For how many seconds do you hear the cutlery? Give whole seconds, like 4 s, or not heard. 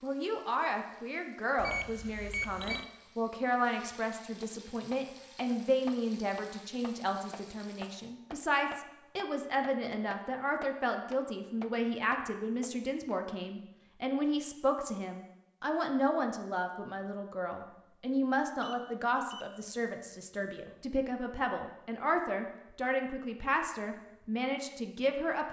not heard.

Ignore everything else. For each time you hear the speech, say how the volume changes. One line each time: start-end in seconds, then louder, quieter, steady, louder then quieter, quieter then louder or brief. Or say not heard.
0.0-25.4 steady.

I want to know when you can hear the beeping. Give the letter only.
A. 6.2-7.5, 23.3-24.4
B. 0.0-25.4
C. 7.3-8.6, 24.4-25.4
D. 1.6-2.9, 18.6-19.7
D.